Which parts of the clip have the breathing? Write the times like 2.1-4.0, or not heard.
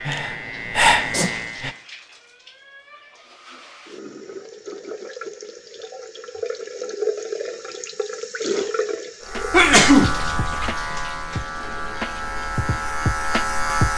0.0-1.8.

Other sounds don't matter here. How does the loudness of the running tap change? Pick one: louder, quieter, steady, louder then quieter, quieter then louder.
louder then quieter.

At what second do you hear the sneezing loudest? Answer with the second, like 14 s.
10 s.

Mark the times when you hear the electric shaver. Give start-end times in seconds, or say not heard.
0.0-1.9, 9.2-13.9.